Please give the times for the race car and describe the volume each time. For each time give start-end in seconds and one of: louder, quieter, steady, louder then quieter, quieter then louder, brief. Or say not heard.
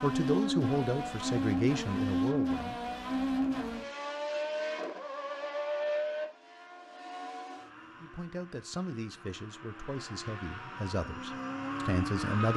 0.0-12.5 quieter then louder.